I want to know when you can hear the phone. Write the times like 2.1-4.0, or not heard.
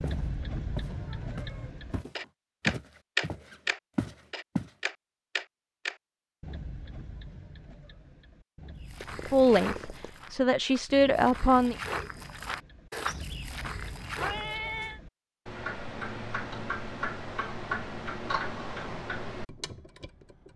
not heard.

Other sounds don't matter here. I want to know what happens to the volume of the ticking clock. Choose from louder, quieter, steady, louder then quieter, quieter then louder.
quieter then louder.